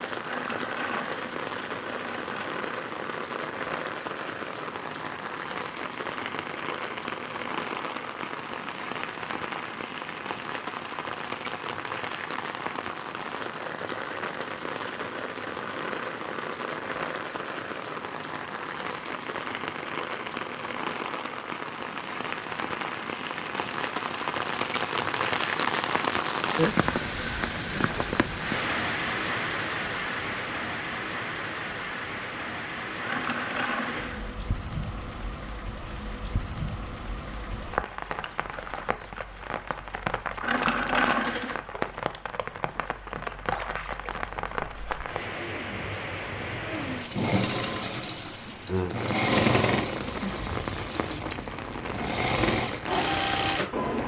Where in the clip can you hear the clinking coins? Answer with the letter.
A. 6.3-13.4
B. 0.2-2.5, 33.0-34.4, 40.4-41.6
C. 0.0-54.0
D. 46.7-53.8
B.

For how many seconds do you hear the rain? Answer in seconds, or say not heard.
54 s.